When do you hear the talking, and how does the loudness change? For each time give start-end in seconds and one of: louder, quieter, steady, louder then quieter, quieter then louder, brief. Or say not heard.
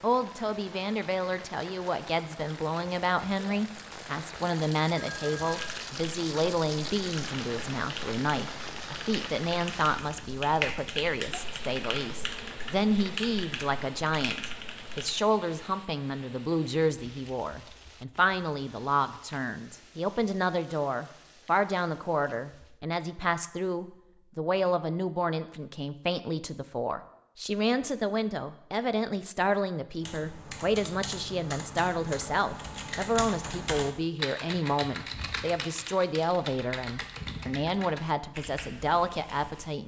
0.0-39.8 steady.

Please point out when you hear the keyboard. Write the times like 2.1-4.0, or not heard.
5.5-15.2, 30.0-39.7.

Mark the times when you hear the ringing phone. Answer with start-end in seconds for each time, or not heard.
5.0-5.8.